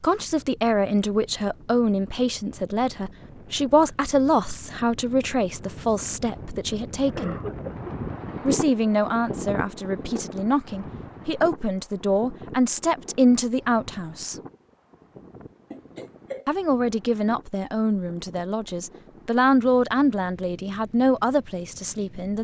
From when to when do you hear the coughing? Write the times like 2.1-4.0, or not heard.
7.2-7.9, 15.7-16.5.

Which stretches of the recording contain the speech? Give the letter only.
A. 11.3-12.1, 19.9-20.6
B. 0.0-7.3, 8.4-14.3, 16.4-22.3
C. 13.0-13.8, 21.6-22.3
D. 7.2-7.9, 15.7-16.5
B.